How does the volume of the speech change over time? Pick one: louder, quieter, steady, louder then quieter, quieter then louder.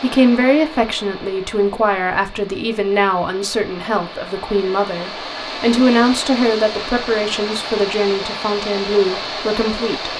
steady.